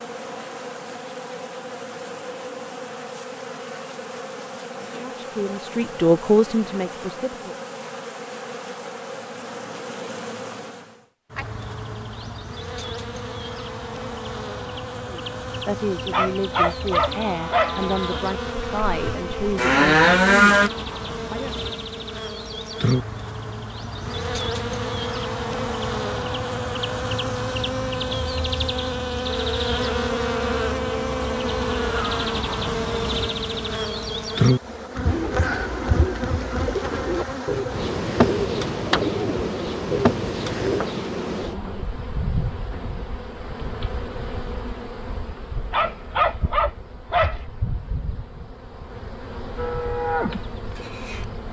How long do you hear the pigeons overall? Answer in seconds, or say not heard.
6 s.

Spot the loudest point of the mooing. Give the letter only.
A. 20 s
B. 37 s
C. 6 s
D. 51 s
A.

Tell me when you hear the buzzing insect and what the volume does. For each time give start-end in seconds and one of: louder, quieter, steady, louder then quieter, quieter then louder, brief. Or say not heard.
0.0-51.4 louder then quieter.